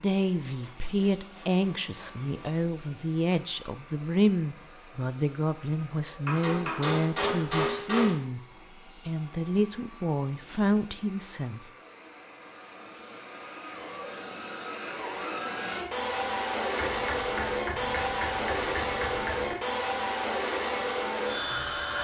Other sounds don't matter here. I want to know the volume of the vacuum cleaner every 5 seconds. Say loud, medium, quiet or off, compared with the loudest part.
quiet, quiet, quiet, loud, loud.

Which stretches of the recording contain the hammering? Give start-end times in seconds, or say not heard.
6.2-8.2, 16.8-19.6.